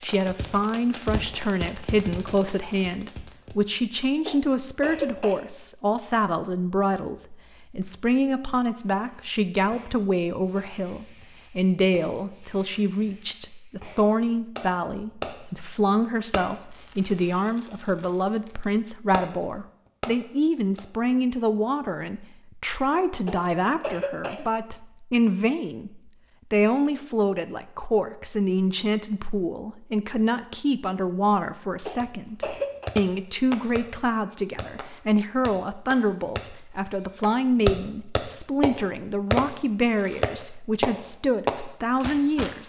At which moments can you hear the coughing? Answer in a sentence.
The coughing can be heard from 4.2 to 5.5 s, from 23.2 to 24.5 s and from 31.9 to 33.0 s.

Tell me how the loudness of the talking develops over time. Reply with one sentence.
The loudness of the talking stays about the same.